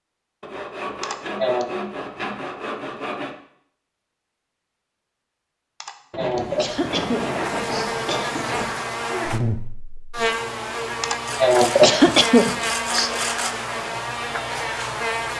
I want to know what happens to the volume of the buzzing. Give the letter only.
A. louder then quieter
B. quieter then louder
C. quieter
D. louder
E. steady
E.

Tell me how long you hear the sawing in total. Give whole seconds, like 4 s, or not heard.
8 s.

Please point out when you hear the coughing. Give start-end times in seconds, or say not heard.
1.0-1.7, 5.8-8.4, 11.0-13.2.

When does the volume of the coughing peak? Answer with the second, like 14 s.
12 s.